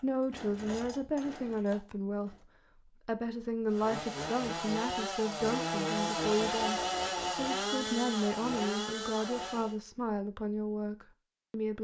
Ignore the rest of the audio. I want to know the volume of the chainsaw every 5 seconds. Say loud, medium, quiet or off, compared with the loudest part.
medium, loud, off.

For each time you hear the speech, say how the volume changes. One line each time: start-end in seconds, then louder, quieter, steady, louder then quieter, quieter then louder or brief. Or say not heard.
0.0-11.7 steady.